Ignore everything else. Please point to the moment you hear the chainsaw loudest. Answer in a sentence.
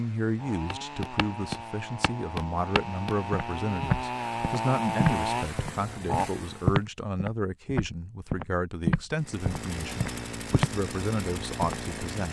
The volume of the chainsaw peaks at 5 seconds.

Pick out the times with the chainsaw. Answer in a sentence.
You can hear the chainsaw from 0.0 to 6.8 s and from 9.2 to 12.2 s.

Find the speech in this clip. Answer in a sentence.
You can hear the speech from 0.0 to 12.2 s.